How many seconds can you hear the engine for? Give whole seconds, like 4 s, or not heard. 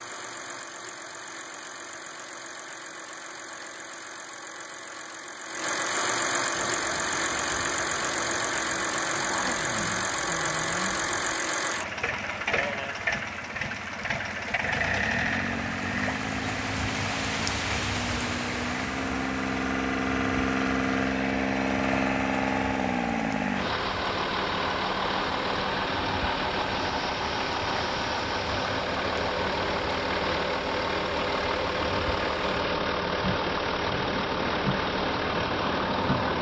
36 s.